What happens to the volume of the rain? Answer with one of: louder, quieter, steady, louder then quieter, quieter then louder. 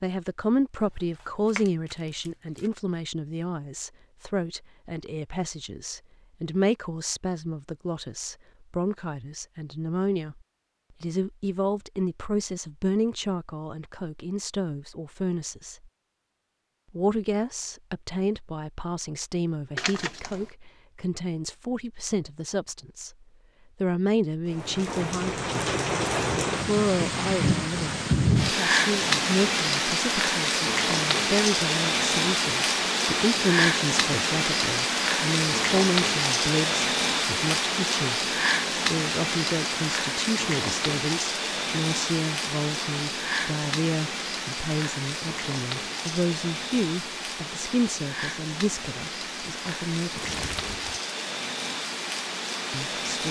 quieter.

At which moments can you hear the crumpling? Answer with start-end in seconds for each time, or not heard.
1.2-2.7, 19.8-20.5, 50.1-51.0.